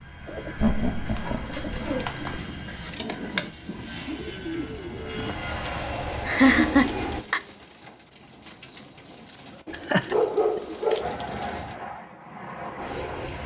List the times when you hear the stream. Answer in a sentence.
You can't hear the stream here.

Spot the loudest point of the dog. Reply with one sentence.
The loudest moment of the dog is at 10 seconds.